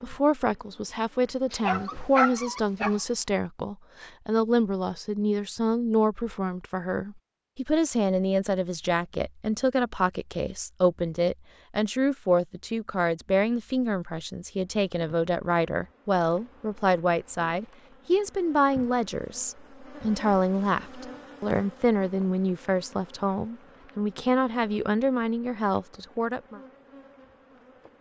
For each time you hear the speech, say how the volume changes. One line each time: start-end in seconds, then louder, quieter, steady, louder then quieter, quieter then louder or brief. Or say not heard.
0.0-26.6 steady.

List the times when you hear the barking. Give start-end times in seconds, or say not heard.
1.5-3.0.